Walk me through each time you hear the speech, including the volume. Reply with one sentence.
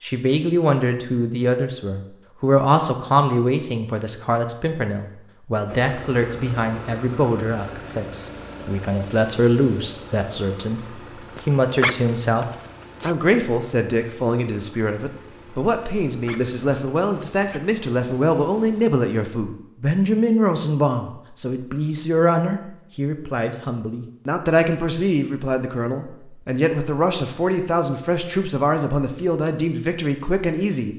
The speech can be heard from 0.0 to 30.9 s, at a steady volume.